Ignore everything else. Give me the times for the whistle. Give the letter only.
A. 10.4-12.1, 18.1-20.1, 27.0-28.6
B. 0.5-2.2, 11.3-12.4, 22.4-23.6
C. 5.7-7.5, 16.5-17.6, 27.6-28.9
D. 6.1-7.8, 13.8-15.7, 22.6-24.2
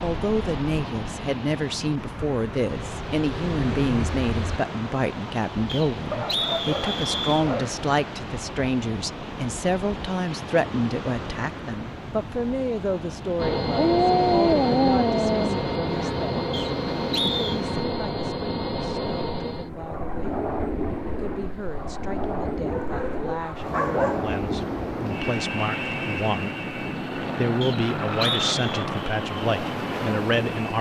C.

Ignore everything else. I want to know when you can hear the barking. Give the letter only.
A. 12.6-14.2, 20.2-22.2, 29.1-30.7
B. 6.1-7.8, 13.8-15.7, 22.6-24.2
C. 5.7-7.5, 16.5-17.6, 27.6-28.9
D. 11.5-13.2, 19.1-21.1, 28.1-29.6
B.